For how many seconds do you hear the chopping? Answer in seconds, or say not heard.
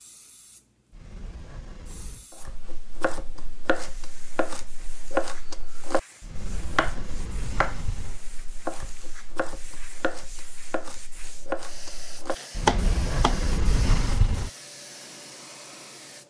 11 s.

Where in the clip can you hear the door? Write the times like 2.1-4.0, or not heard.
0.9-2.2, 6.2-8.2, 12.6-14.5.